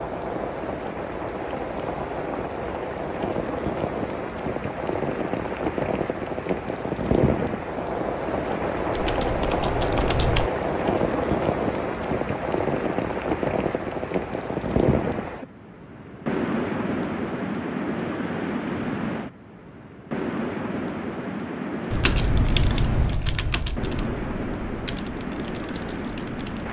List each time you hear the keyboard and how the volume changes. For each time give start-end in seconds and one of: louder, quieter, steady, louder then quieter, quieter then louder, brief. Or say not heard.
8.9-10.5 brief
21.9-26.6 quieter.